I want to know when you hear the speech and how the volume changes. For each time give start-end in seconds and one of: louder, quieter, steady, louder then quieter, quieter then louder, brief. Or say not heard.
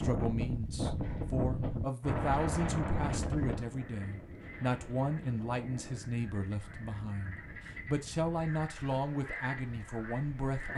0.0-10.7 steady.